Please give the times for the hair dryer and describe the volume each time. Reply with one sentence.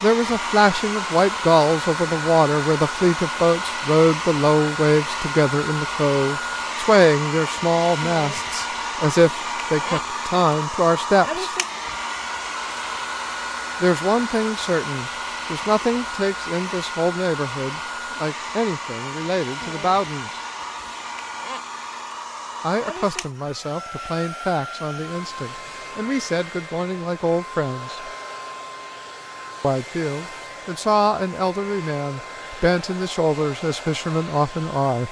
The hair dryer can be heard from 0.0 to 35.0 s, getting quieter.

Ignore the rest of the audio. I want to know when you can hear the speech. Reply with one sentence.
You can hear the speech from 0.0 to 11.5 s, from 13.8 to 20.4 s, from 22.6 to 28.1 s and from 29.6 to 35.0 s.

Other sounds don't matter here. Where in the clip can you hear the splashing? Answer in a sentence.
You can't hear the splashing here.